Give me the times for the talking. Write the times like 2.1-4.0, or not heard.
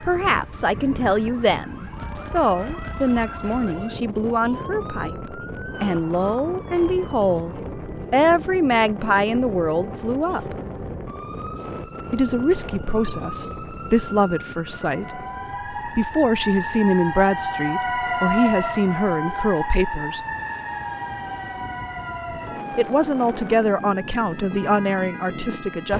0.0-10.6, 12.1-20.2, 22.7-25.9.